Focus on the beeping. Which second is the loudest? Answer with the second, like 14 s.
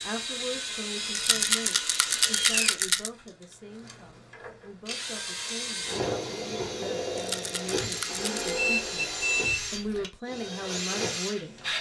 9 s.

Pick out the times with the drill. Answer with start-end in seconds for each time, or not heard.
0.0-11.7.